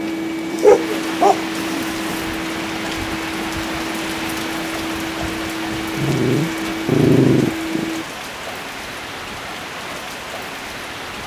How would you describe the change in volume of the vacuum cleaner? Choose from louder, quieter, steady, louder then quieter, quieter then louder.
steady.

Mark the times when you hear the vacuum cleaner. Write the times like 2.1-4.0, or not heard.
0.0-8.1.